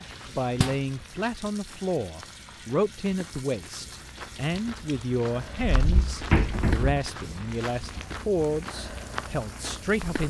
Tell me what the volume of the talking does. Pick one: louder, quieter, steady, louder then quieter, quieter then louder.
steady.